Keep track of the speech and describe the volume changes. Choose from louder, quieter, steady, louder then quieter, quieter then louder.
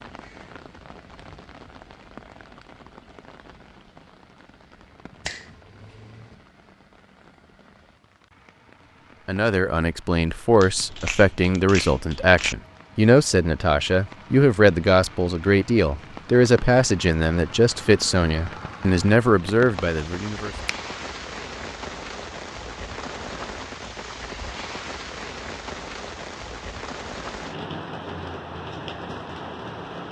steady.